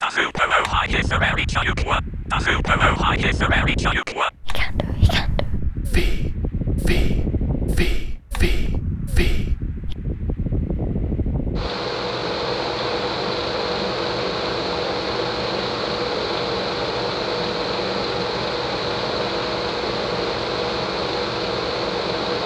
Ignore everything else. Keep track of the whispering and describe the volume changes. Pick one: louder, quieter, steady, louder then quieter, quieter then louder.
quieter.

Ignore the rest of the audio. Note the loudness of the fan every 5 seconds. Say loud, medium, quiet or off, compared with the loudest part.
medium, medium, loud, loud, loud.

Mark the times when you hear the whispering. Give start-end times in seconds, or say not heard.
0.0-9.9.